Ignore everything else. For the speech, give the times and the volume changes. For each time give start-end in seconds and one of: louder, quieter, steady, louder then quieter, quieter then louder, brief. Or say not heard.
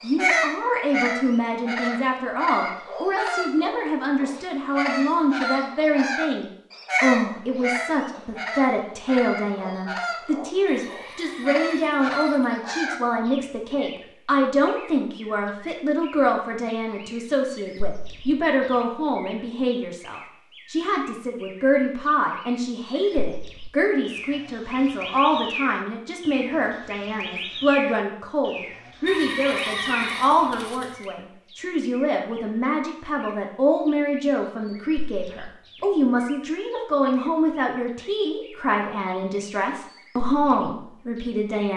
0.0-41.7 steady.